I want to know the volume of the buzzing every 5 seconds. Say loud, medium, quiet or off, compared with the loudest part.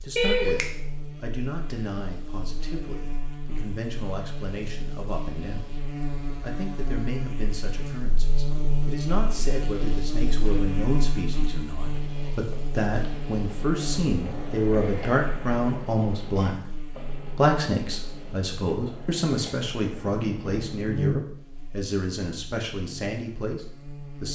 medium, loud, loud, medium, loud.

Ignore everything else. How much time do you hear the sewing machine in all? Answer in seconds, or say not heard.
not heard.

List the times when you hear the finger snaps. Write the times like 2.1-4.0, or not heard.
0.1-0.7.